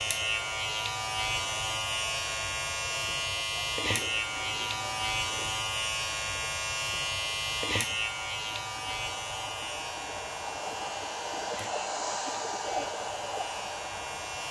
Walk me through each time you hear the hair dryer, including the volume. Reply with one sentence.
You can hear the hair dryer from 0.0 to 14.4 s, getting louder.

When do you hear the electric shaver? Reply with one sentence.
The electric shaver can be heard from 0.0 to 14.4 s.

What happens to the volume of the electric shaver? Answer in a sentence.
The loudness of the electric shaver goes down.